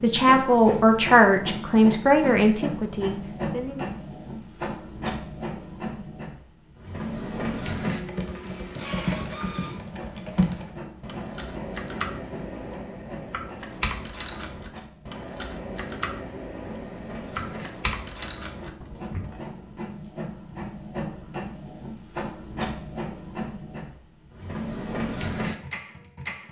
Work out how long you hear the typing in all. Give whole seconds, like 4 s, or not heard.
12 s.